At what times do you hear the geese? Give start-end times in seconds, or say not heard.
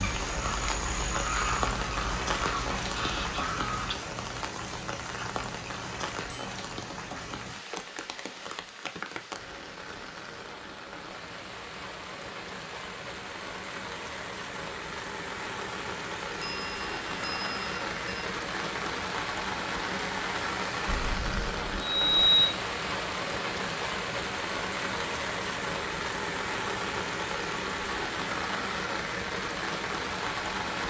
0.0-4.0.